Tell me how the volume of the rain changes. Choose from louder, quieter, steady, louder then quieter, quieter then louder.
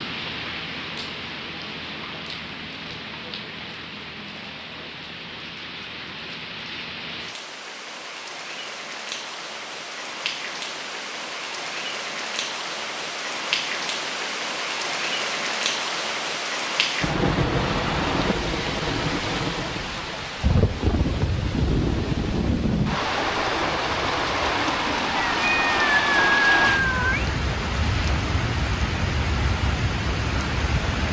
louder.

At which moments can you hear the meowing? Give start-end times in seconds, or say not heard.
25.4-27.3.